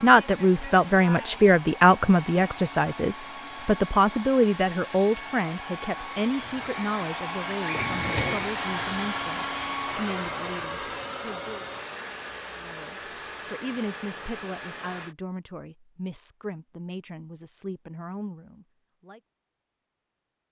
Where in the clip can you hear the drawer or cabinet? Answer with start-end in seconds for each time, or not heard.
7.7-8.5.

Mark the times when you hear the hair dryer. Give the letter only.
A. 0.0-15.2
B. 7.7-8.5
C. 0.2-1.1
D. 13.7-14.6
A.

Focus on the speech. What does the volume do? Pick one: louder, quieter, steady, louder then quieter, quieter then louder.
quieter.